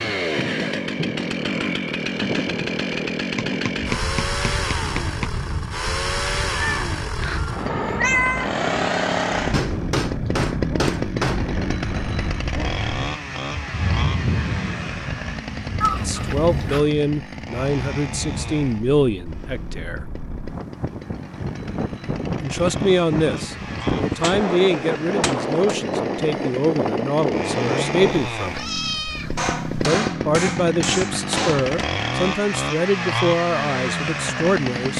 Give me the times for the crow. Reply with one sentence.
The crow can't be heard in this clip.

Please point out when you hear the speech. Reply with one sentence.
You can hear the speech from 15.9 to 20.1 s, from 22.4 to 28.6 s and from 29.9 to 34.9 s.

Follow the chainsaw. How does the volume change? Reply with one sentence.
The loudness of the chainsaw goes down, then up.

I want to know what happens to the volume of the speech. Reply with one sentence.
The volume of the speech stays about the same.